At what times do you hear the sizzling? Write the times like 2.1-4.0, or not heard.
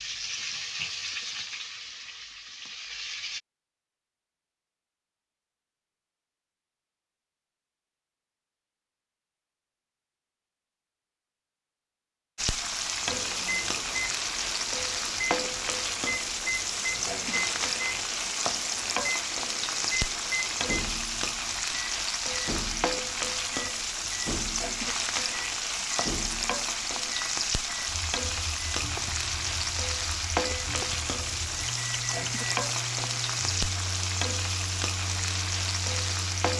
0.0-3.4, 12.3-36.5.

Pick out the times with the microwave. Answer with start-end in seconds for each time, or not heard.
13.0-36.5.